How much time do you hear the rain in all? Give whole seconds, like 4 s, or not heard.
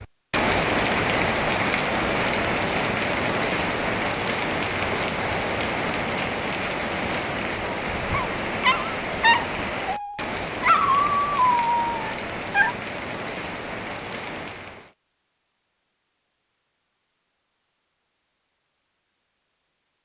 15 s.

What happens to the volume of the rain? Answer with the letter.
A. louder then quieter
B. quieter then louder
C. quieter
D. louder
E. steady
C.